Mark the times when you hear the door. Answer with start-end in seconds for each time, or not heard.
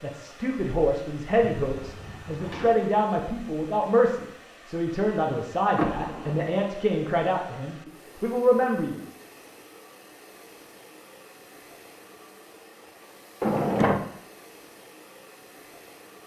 1.6-2.7, 5.8-6.5, 13.4-14.1.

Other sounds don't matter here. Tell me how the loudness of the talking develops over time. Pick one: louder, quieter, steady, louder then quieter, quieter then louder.
steady.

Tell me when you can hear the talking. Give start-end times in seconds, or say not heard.
0.0-9.0.